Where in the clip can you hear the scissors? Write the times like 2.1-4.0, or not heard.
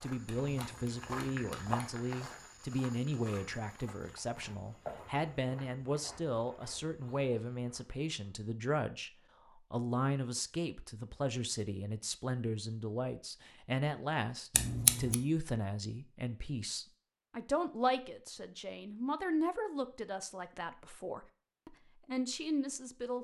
0.2-1.9, 14.5-15.2.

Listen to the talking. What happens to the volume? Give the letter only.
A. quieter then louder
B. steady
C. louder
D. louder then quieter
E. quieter
B.